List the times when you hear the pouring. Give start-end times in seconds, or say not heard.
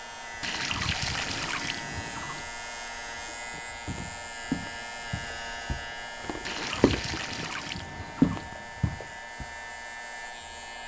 0.4-2.5, 6.5-8.4.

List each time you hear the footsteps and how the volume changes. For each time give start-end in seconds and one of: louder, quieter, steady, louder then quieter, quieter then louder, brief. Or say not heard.
3.0-9.4 quieter then louder.